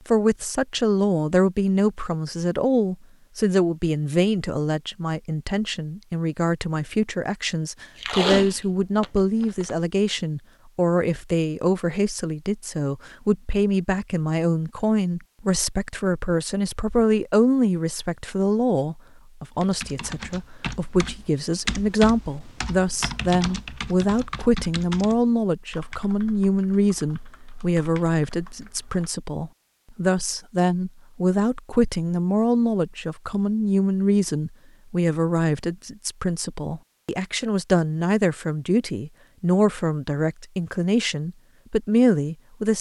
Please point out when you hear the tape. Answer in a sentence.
You can hear the tape from 8.0 to 9.7 s.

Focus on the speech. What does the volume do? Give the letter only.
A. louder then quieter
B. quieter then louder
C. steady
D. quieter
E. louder
C.